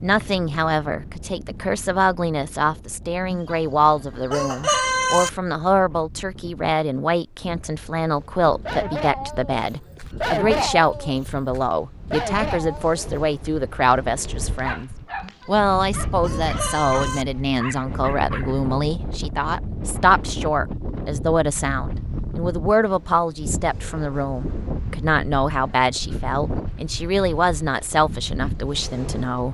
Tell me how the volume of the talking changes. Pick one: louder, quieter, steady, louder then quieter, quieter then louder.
steady.